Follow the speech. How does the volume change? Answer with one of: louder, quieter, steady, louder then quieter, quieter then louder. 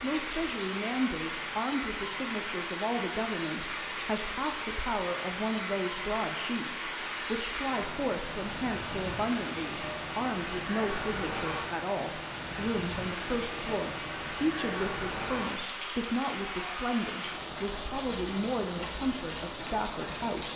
steady.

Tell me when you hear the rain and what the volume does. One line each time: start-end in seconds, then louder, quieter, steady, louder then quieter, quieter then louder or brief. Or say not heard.
0.0-20.5 steady.